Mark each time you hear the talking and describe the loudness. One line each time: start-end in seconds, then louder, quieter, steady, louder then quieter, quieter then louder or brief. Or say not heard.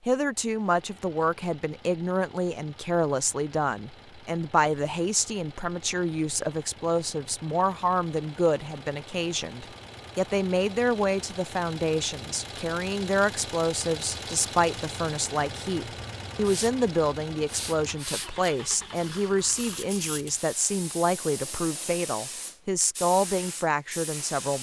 0.1-24.5 steady.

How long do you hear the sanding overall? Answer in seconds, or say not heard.
not heard.